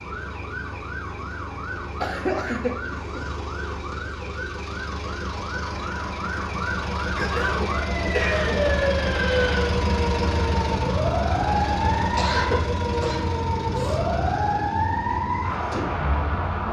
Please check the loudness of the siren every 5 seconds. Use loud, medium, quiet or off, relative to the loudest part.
medium, loud, loud, loud.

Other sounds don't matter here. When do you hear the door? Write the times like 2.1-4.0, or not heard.
not heard.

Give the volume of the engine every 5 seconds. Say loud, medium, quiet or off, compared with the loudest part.
medium, loud, loud, medium.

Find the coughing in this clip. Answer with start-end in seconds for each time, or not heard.
2.0-3.2, 7.2-8.7, 12.2-14.0.